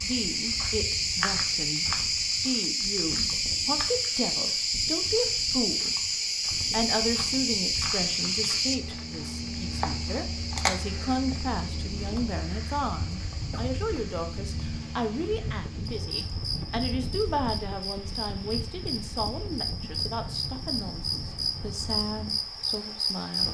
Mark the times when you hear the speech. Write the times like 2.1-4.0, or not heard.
0.0-6.0, 6.7-23.4.